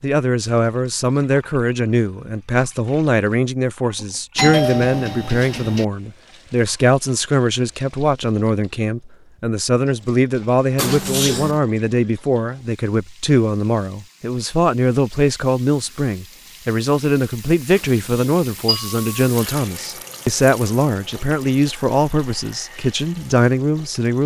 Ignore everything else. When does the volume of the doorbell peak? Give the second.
5 s.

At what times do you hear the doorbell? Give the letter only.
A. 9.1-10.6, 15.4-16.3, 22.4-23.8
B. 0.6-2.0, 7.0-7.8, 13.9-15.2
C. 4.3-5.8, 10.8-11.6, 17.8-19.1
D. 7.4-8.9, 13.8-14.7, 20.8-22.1
C.